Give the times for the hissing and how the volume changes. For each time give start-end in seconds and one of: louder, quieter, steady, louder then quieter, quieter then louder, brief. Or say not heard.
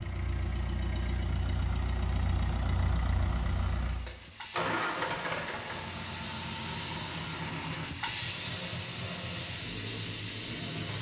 3.2-10.9 louder.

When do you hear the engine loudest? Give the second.
5 s.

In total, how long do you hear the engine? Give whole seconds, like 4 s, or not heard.
11 s.